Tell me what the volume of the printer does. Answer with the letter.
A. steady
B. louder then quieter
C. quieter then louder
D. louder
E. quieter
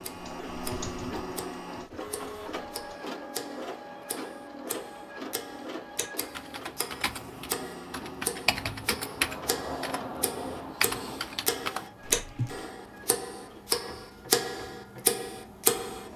E.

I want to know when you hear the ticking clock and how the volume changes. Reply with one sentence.
The ticking clock can be heard from 0.0 to 16.1 s, getting louder.